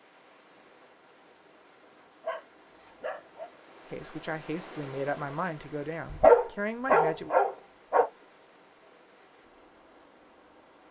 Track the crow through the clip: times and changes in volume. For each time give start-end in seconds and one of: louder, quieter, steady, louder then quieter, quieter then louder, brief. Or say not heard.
not heard.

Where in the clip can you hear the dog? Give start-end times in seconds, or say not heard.
2.2-3.5, 6.0-8.1.